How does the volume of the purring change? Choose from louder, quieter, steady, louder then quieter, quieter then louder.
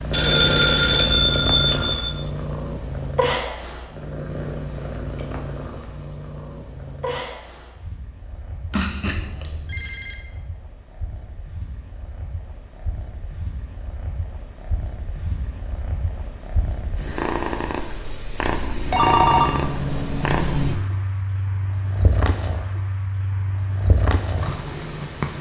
quieter then louder.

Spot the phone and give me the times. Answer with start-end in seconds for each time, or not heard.
0.1-2.1, 8.7-10.2, 18.9-20.8.